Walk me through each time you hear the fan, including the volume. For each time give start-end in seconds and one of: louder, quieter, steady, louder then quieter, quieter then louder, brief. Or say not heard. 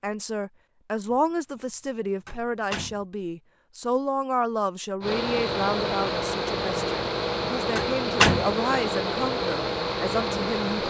5.0-10.8 steady.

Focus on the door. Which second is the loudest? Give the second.
8 s.